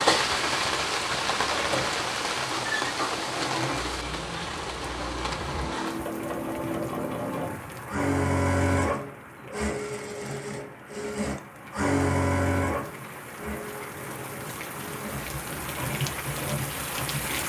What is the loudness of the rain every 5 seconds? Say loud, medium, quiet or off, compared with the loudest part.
loud, medium, quiet, medium.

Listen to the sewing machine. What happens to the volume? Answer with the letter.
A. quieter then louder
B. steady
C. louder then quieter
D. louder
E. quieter
C.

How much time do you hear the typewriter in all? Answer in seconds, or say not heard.
not heard.